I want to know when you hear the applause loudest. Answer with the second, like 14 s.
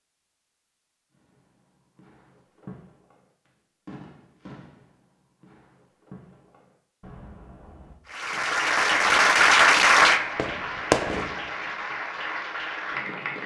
10 s.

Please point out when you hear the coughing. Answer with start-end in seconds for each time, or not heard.
not heard.